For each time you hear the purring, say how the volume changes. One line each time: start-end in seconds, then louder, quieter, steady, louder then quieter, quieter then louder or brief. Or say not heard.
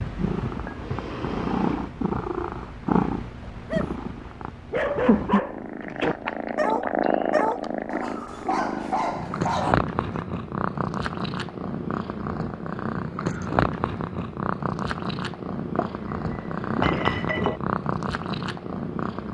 0.0-19.2 steady.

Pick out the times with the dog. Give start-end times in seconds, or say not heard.
3.4-3.9, 4.7-10.2.